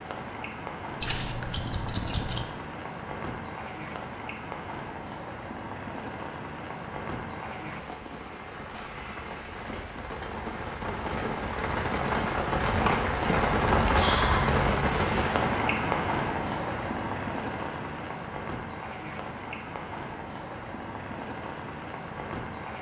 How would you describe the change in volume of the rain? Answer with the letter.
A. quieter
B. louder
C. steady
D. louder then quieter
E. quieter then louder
D.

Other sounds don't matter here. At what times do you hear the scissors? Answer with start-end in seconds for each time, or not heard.
1.0-2.5.